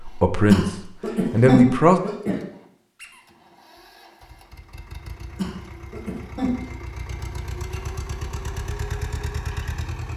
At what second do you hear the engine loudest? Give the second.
9 s.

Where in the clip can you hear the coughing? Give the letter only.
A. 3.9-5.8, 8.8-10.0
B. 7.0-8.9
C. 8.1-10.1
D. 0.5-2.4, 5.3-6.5
D.